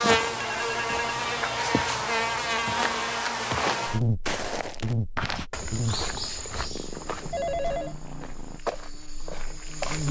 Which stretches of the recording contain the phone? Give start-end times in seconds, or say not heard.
0.3-1.1, 7.3-8.0.